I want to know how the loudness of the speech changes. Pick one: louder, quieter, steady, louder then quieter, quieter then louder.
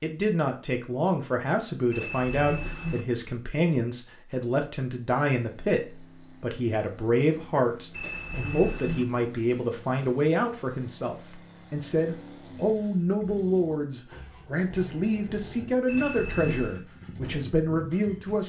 steady.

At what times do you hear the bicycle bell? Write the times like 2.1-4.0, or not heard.
1.9-3.0, 7.9-9.1, 15.8-16.8.